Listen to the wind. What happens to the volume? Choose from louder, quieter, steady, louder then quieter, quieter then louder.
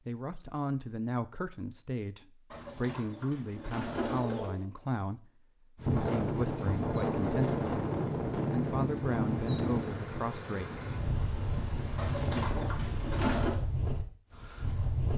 quieter.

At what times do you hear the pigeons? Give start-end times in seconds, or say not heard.
2.5-4.7, 11.9-13.6.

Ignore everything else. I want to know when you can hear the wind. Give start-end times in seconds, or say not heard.
5.8-15.1.